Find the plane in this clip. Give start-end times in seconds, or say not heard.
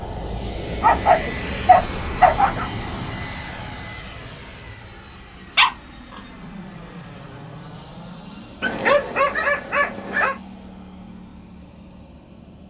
0.0-12.6.